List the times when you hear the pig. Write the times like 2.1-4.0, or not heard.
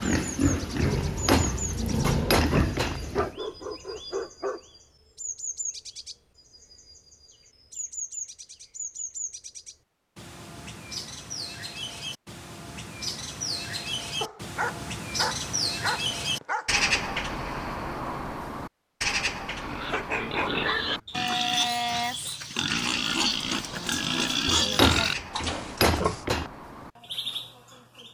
0.0-3.4, 19.6-26.2.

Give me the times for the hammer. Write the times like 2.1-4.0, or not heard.
0.9-3.0, 24.6-26.5.